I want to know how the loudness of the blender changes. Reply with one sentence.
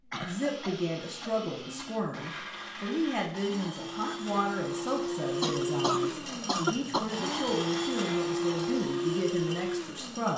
The volume of the blender goes up.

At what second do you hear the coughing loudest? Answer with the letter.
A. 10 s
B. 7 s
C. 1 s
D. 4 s
B.